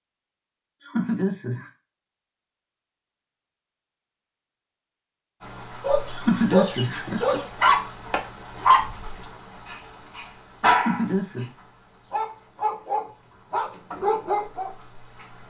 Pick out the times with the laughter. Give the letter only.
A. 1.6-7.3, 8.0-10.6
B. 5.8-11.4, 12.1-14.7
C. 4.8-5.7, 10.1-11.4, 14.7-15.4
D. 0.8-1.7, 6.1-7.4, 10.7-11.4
D.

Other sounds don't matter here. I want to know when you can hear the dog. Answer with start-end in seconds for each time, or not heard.
5.8-11.4, 12.1-14.7.